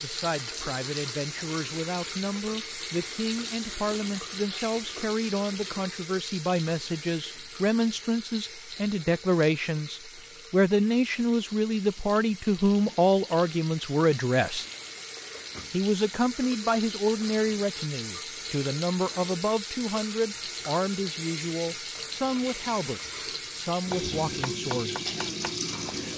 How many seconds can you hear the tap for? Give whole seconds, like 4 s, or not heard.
26 s.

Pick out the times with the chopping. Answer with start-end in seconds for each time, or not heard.
23.9-26.1.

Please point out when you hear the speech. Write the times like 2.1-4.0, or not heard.
0.0-14.7, 15.7-25.1.